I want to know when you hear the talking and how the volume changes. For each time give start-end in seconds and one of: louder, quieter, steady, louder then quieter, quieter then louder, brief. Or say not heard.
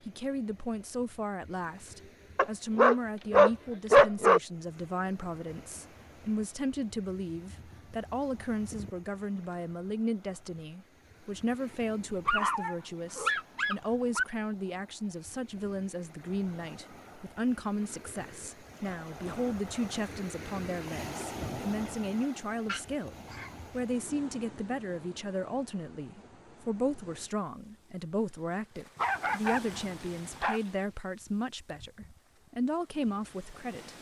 0.1-33.9 steady.